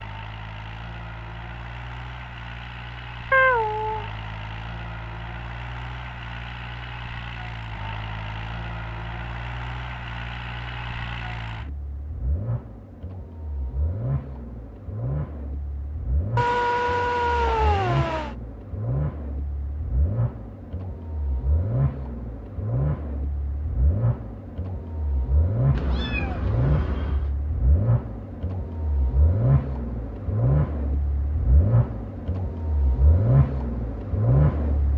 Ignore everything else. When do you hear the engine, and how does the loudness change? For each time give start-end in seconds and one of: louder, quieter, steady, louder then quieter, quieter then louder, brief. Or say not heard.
0.0-34.9 louder.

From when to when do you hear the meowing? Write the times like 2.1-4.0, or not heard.
3.3-4.0, 16.4-18.4, 25.7-27.4.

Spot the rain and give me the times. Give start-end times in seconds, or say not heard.
not heard.